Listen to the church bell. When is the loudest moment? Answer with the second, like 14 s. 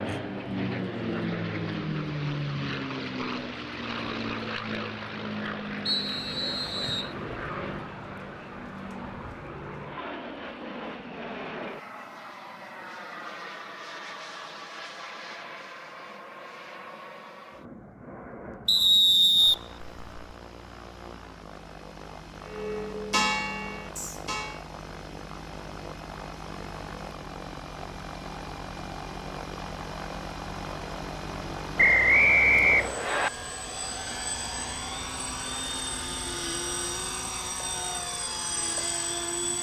23 s.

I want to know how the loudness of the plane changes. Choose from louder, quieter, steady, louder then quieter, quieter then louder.
quieter then louder.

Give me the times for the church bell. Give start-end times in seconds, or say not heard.
22.4-24.6.